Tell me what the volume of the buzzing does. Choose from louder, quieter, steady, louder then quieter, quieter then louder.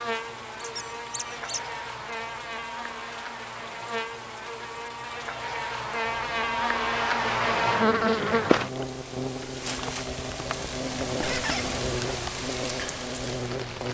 louder then quieter.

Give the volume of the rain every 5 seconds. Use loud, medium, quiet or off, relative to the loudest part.
quiet, medium, loud.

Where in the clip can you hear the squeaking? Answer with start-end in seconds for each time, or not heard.
0.6-1.7, 11.2-11.7.